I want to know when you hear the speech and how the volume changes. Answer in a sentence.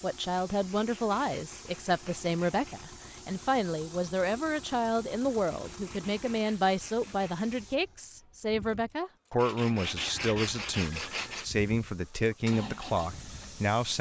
The speech can be heard from 0.0 to 13.9 s, at a steady volume.